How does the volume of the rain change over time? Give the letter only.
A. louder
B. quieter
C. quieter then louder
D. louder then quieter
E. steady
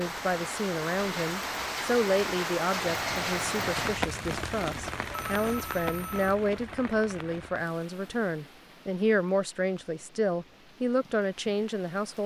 B.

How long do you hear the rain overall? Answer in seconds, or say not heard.
12 s.